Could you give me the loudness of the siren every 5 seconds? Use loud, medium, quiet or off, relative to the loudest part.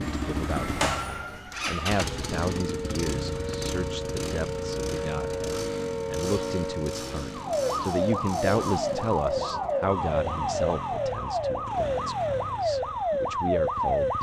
medium, loud, loud.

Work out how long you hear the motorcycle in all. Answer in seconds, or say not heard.
14 s.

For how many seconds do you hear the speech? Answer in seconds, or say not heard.
14 s.